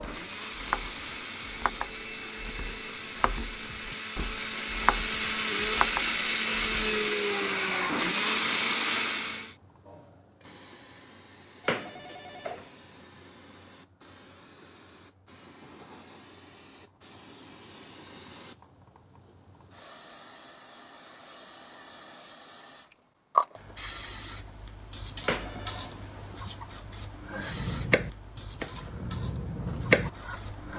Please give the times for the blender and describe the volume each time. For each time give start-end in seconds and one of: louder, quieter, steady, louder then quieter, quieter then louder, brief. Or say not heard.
0.0-9.6 louder.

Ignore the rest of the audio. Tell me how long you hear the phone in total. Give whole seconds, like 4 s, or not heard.
2 s.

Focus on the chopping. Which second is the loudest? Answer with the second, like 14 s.
30 s.